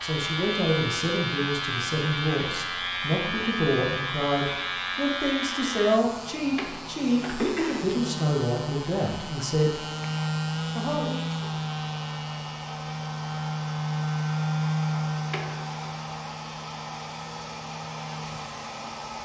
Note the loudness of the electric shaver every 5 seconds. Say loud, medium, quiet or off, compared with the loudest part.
loud, medium, loud, medium.